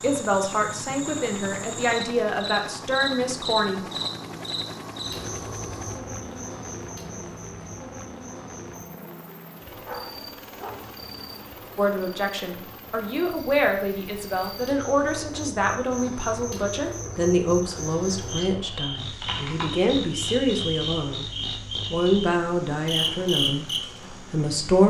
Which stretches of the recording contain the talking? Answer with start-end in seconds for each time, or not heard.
0.0-3.8, 11.8-21.3, 21.9-24.8.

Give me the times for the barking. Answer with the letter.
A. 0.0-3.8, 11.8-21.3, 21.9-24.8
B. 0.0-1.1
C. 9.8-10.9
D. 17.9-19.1
C.